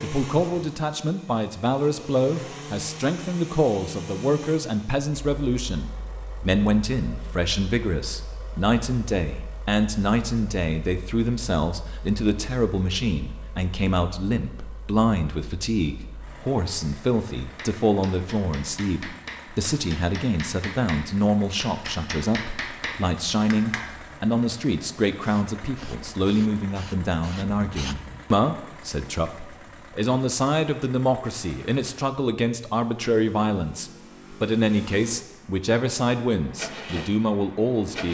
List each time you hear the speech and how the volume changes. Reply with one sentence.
You can hear the speech from 0.0 to 38.0 s, at a steady volume.